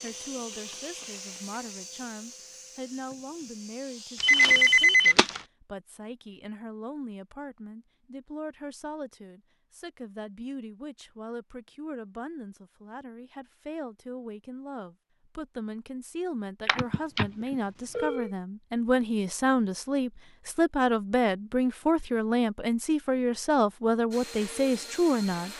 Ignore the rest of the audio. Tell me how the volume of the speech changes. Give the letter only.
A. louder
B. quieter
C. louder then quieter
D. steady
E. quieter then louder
A.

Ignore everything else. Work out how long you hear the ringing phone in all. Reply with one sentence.
You can hear the ringing phone for 3 seconds altogether.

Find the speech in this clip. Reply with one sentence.
You can hear the speech from 0.0 to 25.5 s.